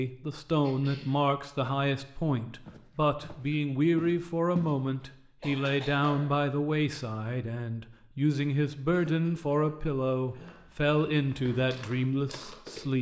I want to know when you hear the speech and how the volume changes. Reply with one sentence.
You can hear the speech from 0.0 to 12.9 s, at a steady volume.